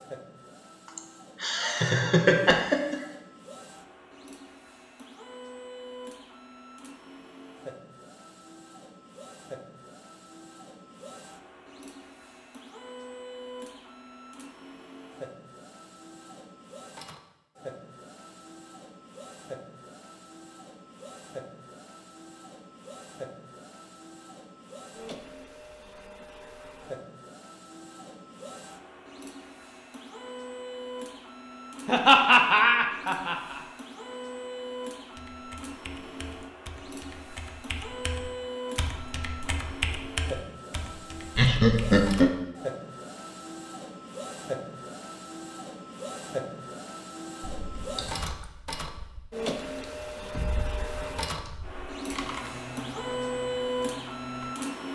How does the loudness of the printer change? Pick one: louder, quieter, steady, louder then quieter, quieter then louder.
louder.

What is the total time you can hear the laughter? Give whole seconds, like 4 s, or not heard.
5 s.